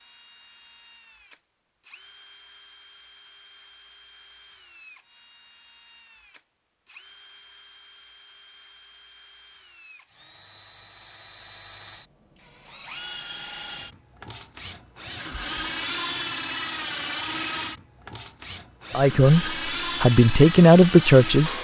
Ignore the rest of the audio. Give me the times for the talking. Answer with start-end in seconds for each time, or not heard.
18.9-21.6.